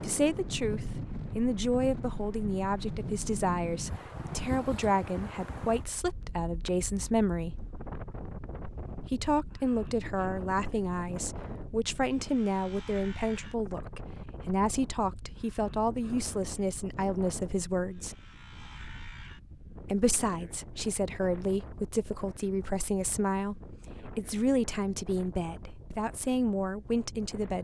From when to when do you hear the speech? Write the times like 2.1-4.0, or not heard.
0.0-7.7, 9.1-18.1, 19.9-27.5.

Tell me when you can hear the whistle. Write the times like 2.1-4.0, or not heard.
not heard.